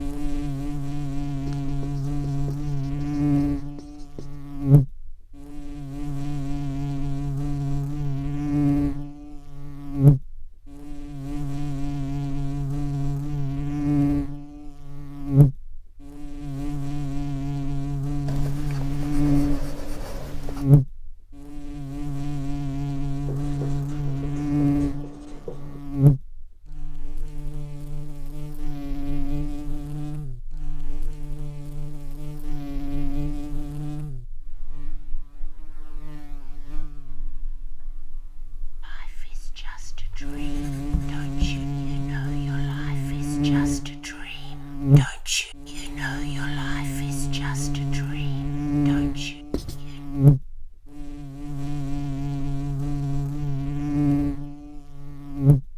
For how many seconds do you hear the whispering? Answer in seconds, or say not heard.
11 s.